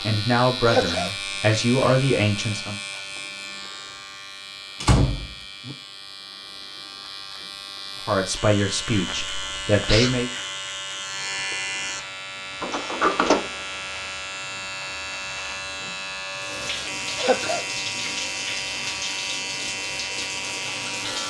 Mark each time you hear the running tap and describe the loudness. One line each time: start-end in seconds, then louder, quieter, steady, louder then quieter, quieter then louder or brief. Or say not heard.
16.3-21.2 steady.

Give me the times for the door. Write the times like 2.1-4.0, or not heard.
4.8-5.8, 12.6-13.5.